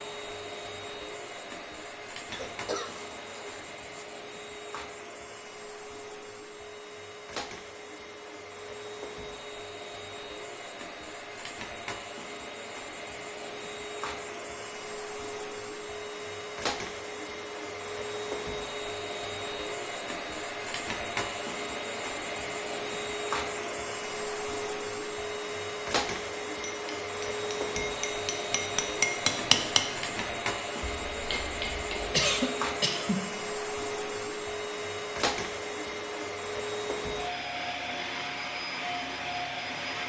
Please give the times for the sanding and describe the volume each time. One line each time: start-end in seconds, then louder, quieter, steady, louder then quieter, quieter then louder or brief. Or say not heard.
not heard.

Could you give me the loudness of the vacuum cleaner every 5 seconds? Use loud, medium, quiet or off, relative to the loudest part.
medium, medium, medium, loud, loud, loud, loud, loud.